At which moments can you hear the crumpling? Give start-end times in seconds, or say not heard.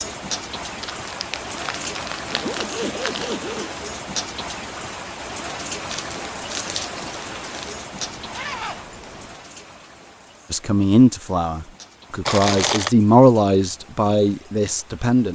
0.8-3.4, 5.8-7.8, 12.2-12.9.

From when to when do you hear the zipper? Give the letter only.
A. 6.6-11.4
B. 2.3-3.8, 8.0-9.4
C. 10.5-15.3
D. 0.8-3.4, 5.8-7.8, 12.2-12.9
B.